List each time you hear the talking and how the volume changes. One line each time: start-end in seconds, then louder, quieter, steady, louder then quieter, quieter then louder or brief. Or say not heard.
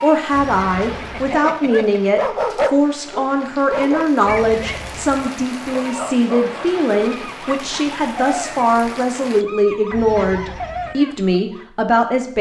0.0-12.3 steady.